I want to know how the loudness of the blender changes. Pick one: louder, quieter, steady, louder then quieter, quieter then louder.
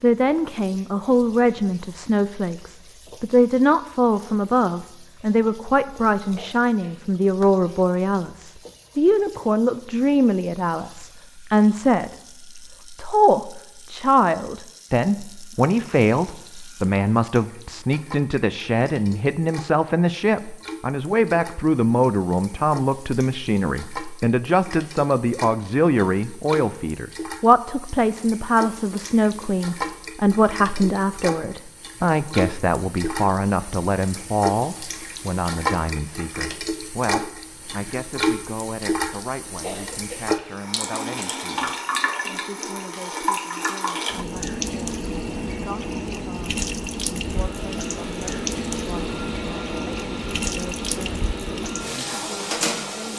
steady.